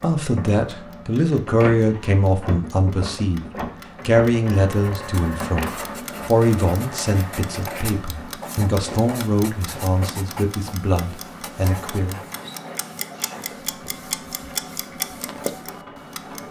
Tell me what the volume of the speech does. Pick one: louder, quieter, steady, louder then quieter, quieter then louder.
quieter.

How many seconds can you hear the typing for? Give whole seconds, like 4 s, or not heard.
not heard.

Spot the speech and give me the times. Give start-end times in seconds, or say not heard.
0.0-12.2.